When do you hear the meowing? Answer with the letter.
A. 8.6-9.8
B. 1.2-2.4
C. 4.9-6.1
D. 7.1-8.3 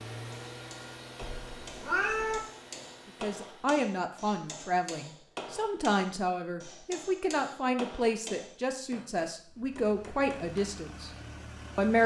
B.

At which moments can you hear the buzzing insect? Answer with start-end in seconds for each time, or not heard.
not heard.